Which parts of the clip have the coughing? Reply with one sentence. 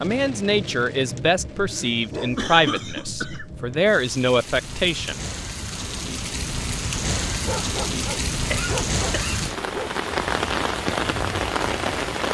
The coughing can be heard from 2.4 to 3.6 s and from 8.3 to 9.6 s.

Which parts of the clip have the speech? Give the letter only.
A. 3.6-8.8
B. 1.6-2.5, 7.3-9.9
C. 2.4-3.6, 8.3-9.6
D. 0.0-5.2
D.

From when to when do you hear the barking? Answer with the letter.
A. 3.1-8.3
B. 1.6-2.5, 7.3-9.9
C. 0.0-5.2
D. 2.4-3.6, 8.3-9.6
B.